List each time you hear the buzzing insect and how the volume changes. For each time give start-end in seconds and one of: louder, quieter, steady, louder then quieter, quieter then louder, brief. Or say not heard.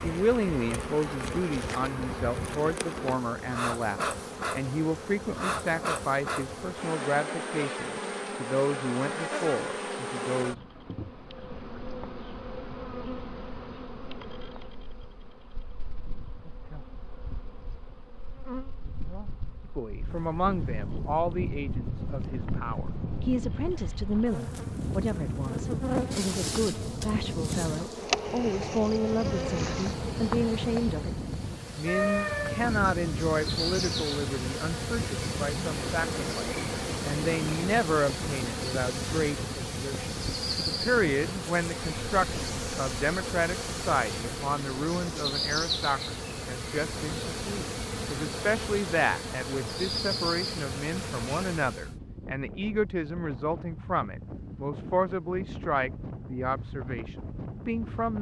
0.0-52.0 quieter then louder.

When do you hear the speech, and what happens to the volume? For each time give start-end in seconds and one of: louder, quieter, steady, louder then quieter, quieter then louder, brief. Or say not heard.
0.0-10.6 steady
19.8-58.1 steady.